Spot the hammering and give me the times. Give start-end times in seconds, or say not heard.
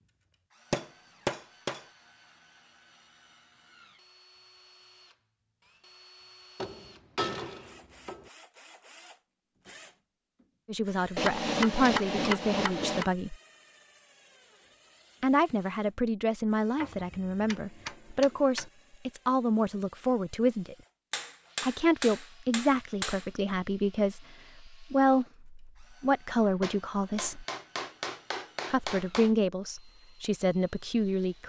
0.7-1.9, 6.5-8.2, 11.2-13.1, 16.8-18.6, 21.1-23.2, 26.6-29.3.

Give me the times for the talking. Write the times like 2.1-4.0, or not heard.
10.7-13.3, 15.2-20.8, 21.6-27.4, 28.7-31.4.